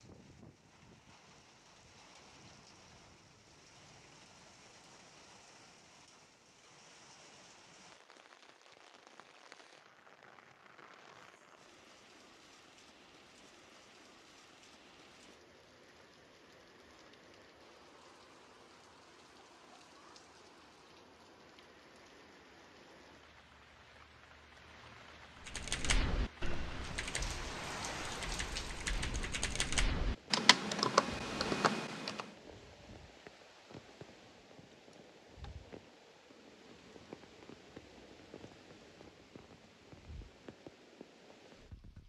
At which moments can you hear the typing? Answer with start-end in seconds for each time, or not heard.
25.4-32.3.